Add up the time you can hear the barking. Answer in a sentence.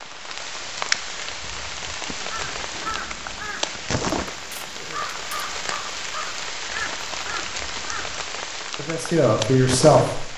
The barking can't be heard in this clip.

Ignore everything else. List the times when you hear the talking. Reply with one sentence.
The talking can be heard from 8.8 to 10.3 s.